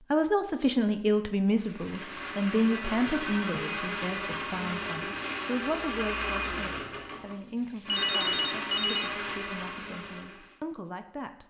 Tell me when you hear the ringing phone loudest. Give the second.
8 s.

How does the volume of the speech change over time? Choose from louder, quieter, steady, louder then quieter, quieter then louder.
quieter.